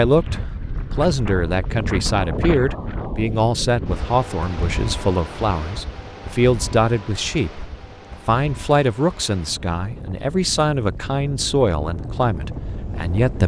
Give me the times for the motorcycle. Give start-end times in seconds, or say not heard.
not heard.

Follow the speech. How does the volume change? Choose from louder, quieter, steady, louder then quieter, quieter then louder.
steady.